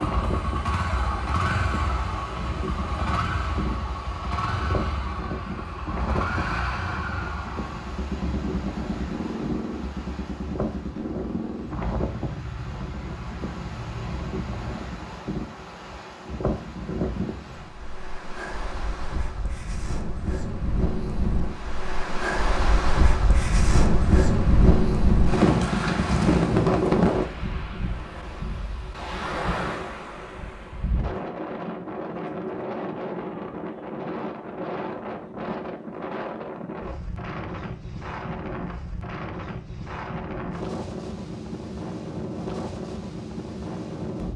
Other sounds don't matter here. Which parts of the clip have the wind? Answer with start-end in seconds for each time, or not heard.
0.0-44.3.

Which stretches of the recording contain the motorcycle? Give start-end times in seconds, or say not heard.
0.0-14.8.